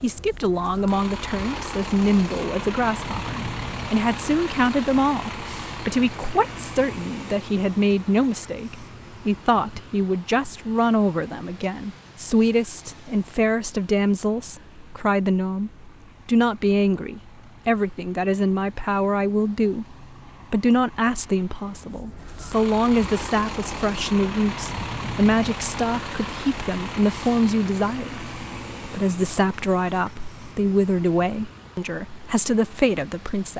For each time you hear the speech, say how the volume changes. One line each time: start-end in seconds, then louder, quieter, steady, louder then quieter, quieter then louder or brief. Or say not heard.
0.0-33.5 steady.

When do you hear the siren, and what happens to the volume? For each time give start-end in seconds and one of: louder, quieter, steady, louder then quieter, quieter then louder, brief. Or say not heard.
not heard.